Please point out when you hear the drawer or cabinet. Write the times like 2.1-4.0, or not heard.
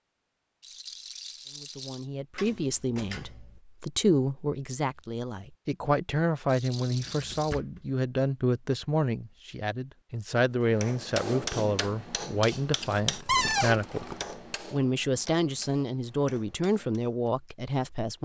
2.4-3.6, 6.9-7.8, 13.2-13.8.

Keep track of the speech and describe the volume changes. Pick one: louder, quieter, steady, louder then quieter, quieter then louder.
steady.